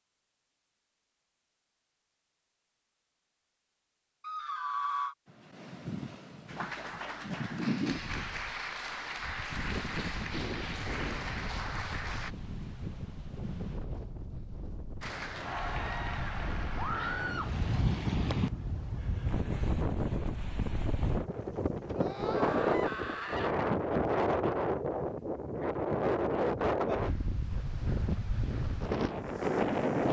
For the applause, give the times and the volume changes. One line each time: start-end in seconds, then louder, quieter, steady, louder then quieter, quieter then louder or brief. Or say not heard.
6.5-12.3 steady
15.0-17.6 brief.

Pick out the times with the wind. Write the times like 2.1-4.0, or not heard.
5.2-30.0.